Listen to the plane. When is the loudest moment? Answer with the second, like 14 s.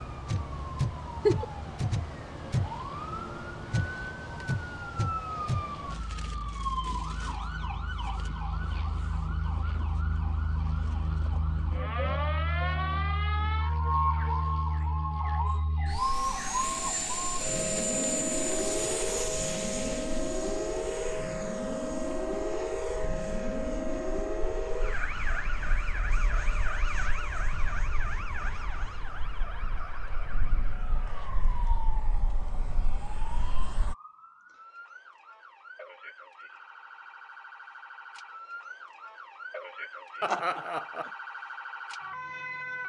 18 s.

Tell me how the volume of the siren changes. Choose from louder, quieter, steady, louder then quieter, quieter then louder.
quieter.